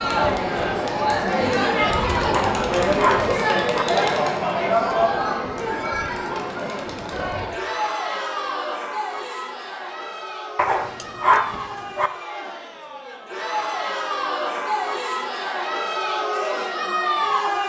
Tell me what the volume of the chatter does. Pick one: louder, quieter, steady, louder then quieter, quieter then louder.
quieter then louder.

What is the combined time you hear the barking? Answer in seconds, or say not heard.
3 s.